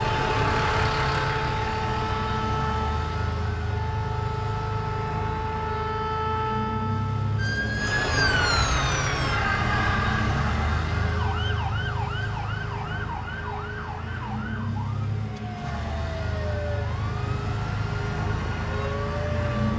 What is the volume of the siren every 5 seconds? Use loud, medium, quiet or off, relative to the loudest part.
loud, loud, medium, medium.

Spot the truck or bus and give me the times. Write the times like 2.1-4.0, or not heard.
0.0-19.7.